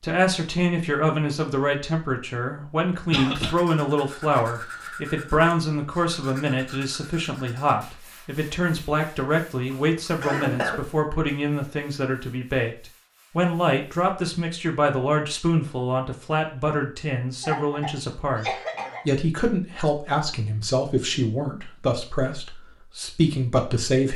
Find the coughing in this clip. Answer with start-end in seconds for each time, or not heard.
3.1-3.5, 9.7-10.8, 17.4-19.1.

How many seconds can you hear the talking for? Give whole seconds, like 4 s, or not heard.
23 s.